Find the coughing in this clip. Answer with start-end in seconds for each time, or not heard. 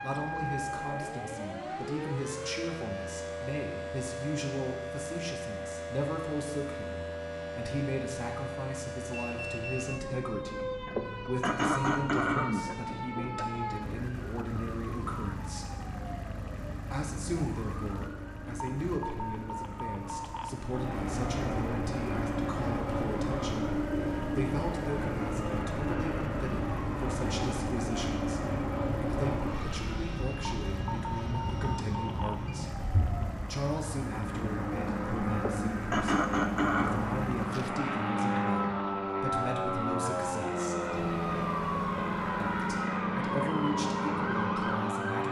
10.8-13.4, 35.4-37.0.